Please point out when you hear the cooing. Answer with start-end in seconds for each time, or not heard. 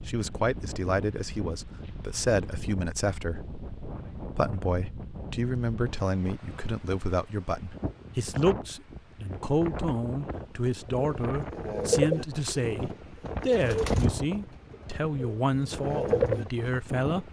10.9-16.9.